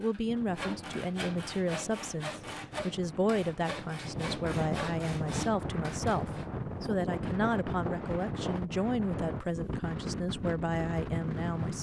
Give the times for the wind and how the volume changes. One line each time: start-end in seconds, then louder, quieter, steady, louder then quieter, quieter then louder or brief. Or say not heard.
0.2-11.7 louder.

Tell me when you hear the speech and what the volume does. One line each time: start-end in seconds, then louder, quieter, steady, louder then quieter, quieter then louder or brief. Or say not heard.
0.0-11.7 steady.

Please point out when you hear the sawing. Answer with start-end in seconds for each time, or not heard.
0.0-6.5.